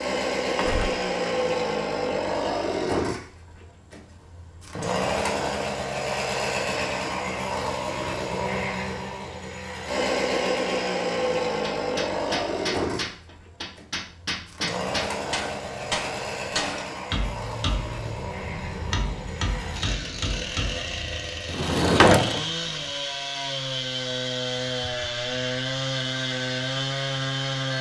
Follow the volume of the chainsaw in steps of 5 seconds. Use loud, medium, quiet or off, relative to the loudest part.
loud, loud, loud, medium, loud, loud.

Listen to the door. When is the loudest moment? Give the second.
22 s.